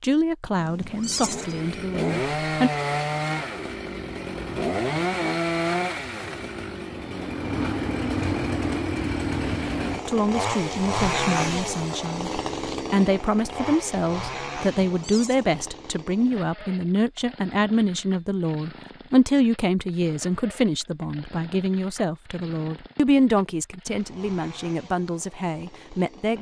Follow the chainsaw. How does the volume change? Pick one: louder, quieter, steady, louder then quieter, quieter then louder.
quieter.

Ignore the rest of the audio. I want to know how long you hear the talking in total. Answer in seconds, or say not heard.
19 s.